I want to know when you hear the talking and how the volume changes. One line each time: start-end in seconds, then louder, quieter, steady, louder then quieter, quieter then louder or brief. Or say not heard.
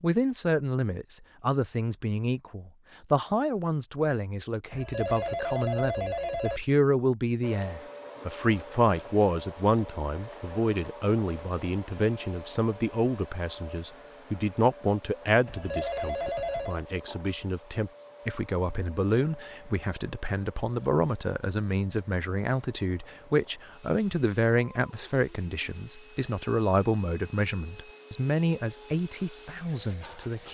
0.0-30.4 steady.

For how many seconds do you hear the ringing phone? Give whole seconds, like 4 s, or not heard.
3 s.